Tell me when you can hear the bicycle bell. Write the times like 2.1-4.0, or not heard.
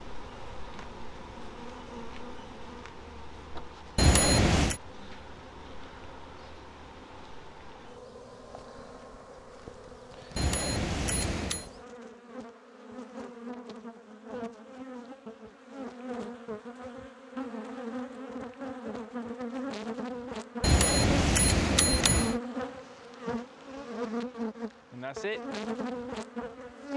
4.0-4.8, 10.3-11.7, 20.6-22.4.